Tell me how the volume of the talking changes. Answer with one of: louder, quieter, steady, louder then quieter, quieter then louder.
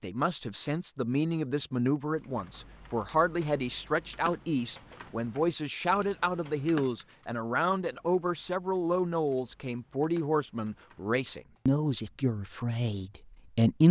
steady.